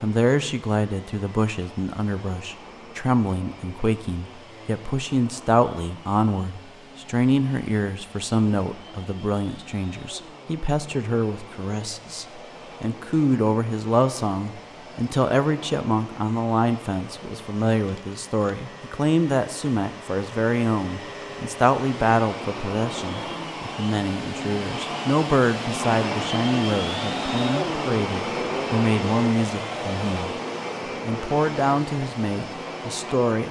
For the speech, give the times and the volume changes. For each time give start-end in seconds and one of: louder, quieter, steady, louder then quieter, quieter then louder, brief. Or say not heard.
0.0-30.4 steady
31.1-33.4 brief.